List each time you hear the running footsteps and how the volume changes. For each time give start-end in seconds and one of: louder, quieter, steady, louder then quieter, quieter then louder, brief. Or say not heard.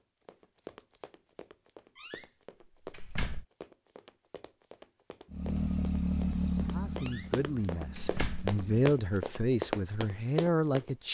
0.2-10.9 louder.